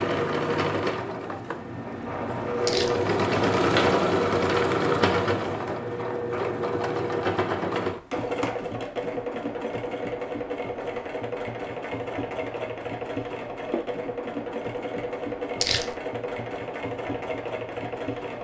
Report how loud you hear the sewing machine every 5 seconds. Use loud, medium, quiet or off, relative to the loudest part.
loud, loud, medium, medium.